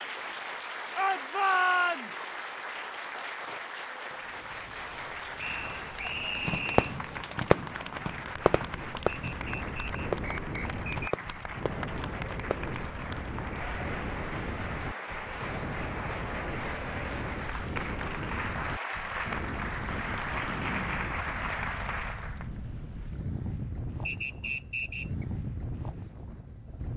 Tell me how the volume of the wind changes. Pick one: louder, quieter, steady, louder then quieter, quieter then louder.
louder.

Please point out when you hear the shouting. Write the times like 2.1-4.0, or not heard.
0.9-2.4.